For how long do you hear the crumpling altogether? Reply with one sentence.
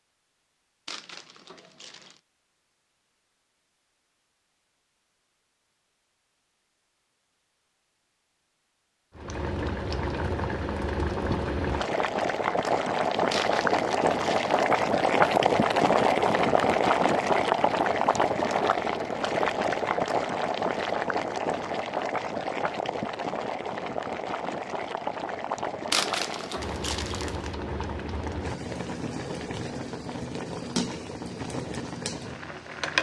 The crumpling can be heard for 4 seconds in total.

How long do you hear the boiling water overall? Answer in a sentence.
You can hear the boiling water for 24 seconds altogether.